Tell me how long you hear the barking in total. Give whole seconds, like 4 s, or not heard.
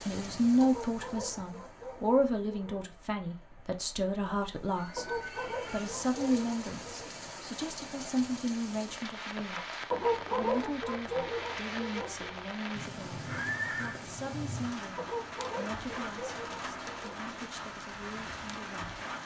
9 s.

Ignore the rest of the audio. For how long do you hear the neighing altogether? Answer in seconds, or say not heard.
2 s.